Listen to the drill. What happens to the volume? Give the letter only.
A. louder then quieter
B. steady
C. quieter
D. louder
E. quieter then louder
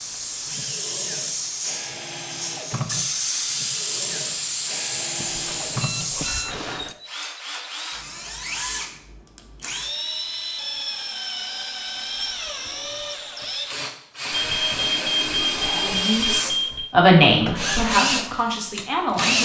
D.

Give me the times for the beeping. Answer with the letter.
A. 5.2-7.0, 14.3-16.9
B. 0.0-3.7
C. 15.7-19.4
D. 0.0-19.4
A.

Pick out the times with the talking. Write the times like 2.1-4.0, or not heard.
15.7-19.4.